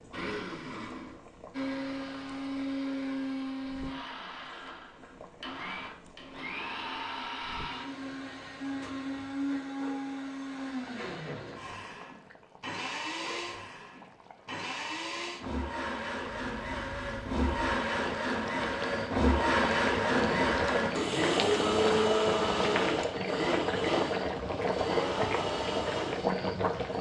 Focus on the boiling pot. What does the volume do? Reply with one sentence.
The loudness of the boiling pot goes up.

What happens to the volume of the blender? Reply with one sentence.
The volume of the blender goes up.